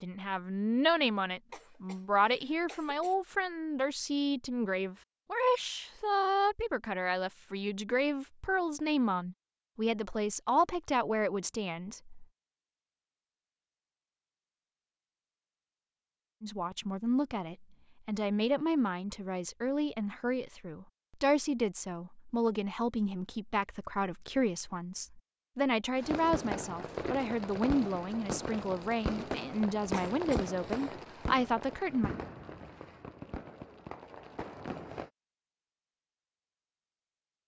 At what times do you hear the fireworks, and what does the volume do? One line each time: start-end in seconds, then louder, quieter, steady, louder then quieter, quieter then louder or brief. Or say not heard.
25.9-35.1 quieter.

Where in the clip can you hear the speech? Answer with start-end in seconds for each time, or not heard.
0.0-12.2, 16.4-32.1.